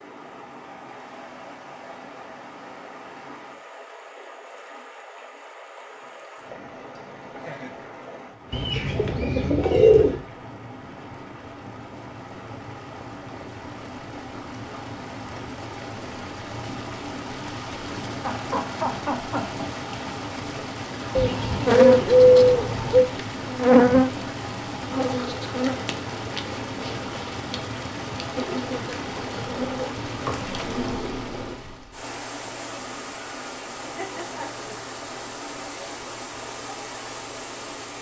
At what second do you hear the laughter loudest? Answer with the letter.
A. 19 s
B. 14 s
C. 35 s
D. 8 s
A.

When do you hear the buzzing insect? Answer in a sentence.
You can hear the buzzing insect from 21.6 to 31.6 s.